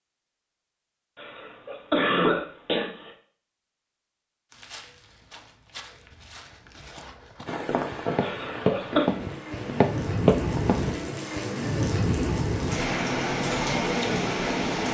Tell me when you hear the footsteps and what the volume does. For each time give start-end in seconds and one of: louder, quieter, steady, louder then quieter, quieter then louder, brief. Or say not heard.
4.5-11.4 louder.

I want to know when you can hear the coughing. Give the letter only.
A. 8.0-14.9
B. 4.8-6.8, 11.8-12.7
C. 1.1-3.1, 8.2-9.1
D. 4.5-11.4
C.